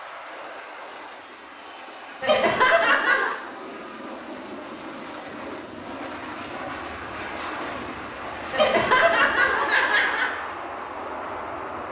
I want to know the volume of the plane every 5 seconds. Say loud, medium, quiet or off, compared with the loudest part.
medium, loud, loud.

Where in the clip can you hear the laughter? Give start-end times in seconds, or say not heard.
2.2-3.4, 8.5-10.3.